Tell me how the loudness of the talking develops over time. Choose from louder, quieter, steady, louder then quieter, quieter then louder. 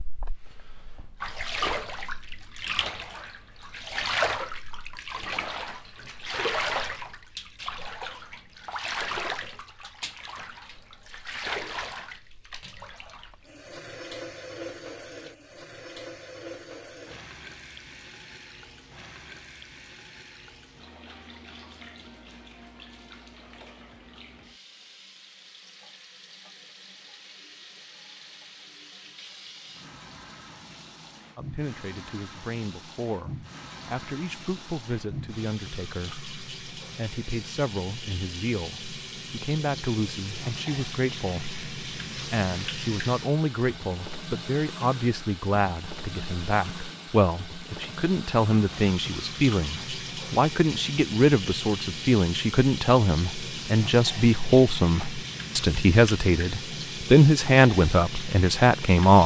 louder.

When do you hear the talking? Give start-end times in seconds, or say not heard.
31.4-59.2.